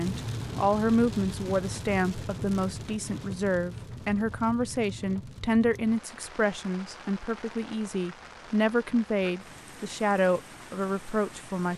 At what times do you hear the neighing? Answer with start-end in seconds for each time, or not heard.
not heard.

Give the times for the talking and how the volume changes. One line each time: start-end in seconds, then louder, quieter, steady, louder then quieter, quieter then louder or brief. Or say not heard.
0.0-11.7 steady.